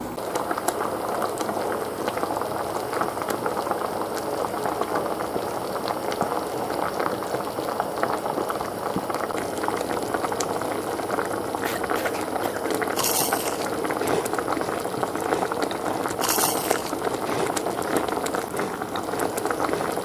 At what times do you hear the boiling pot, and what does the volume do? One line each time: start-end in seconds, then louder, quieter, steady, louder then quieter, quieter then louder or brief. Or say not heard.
0.0-19.9 steady.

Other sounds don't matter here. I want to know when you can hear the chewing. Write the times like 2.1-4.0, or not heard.
12.9-19.9.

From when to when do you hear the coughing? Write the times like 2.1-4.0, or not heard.
11.6-13.1.